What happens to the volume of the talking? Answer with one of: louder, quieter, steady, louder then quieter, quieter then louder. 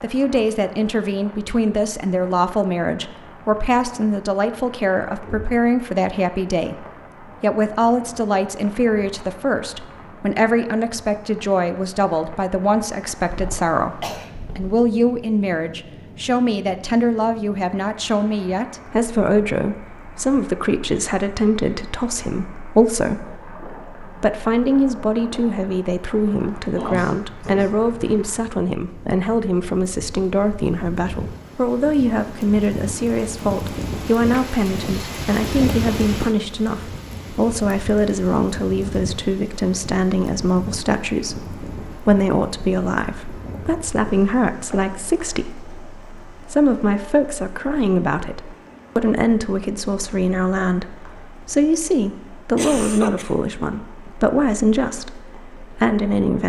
steady.